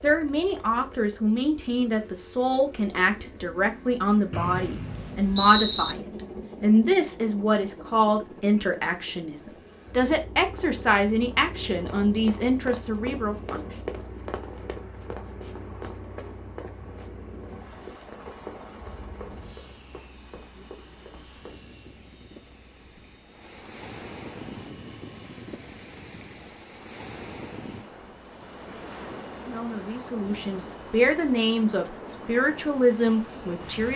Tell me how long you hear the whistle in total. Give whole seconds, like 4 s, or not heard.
2 s.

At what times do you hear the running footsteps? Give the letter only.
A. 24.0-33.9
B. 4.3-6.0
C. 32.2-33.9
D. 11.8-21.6
D.